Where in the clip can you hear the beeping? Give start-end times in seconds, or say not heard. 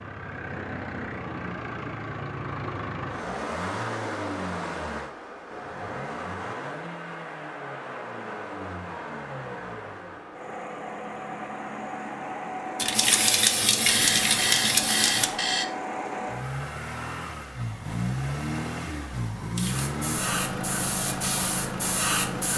13.8-15.7.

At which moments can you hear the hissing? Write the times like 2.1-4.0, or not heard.
12.8-15.3, 19.6-22.5.